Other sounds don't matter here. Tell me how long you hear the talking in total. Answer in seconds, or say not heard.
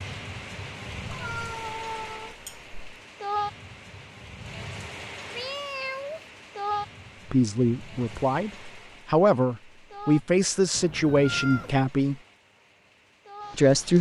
5 s.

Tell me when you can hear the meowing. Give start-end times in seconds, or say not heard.
1.1-3.0, 5.3-6.2, 10.7-11.8.